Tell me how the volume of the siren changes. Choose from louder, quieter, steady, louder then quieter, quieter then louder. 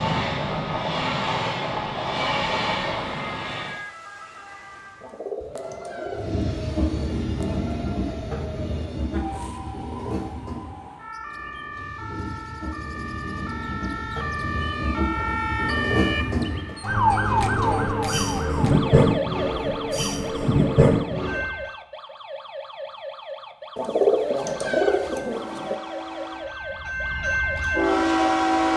louder then quieter.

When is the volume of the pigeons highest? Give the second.
24 s.